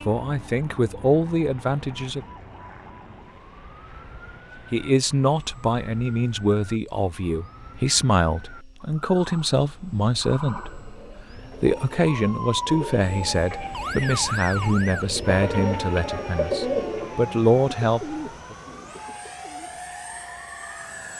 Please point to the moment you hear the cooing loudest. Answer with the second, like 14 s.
17 s.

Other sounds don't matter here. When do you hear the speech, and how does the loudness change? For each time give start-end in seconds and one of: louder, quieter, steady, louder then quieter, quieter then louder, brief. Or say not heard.
0.1-2.2 brief
4.7-18.6 steady.